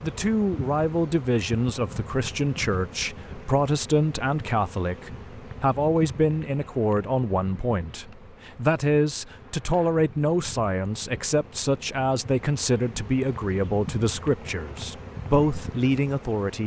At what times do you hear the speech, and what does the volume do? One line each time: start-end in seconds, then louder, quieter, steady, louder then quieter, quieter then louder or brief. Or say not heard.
0.0-16.6 steady.